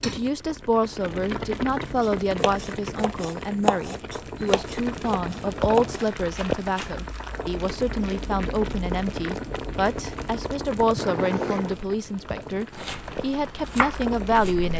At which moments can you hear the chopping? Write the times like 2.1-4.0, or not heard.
2.0-7.0, 12.7-14.7.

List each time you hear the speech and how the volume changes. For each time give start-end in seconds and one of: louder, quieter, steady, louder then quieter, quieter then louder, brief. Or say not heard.
0.1-14.7 steady.